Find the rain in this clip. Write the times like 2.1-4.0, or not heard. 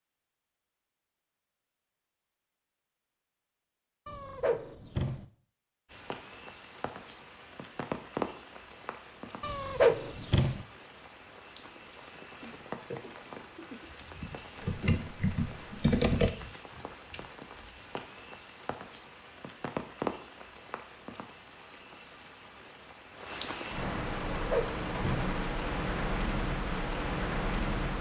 5.9-27.9.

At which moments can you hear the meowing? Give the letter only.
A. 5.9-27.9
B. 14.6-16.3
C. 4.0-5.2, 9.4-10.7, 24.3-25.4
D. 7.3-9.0
C.